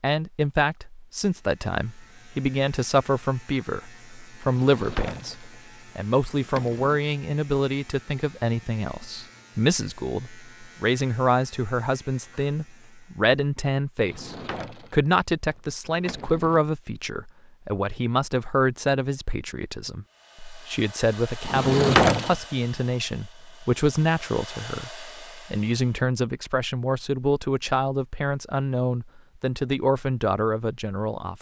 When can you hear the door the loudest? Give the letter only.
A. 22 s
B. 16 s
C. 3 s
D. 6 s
A.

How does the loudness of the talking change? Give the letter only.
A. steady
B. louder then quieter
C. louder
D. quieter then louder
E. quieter
A.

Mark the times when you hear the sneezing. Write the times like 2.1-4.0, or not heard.
not heard.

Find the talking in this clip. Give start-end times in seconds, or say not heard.
0.0-31.3.